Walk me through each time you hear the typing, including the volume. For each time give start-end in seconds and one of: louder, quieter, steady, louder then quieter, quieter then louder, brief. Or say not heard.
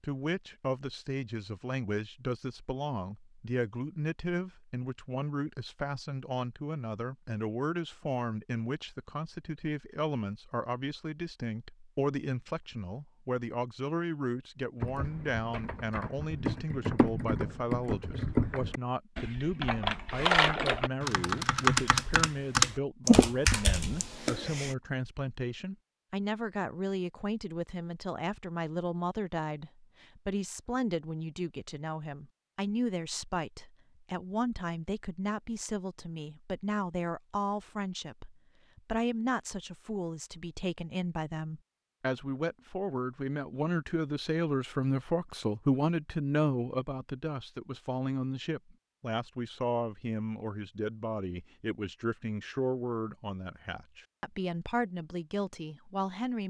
14.8-24.7 louder.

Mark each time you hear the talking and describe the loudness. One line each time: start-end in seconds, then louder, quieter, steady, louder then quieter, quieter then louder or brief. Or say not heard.
0.0-56.4 steady.